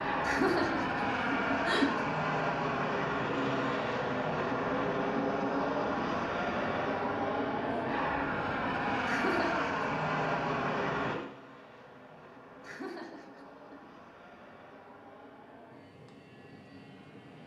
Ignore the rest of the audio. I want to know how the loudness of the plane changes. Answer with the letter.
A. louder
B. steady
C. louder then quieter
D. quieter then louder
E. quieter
E.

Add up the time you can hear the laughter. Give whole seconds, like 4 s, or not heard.
4 s.